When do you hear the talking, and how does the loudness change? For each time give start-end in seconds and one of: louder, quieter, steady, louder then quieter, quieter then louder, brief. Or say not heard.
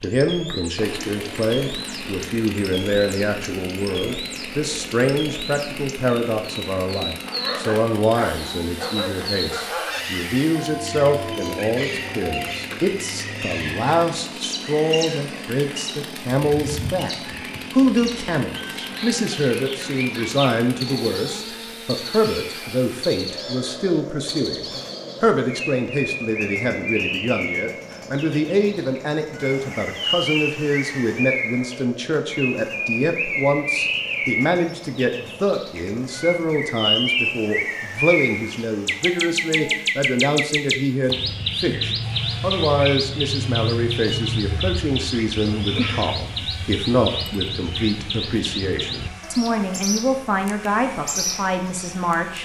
0.0-52.3 steady.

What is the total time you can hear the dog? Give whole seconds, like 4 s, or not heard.
5 s.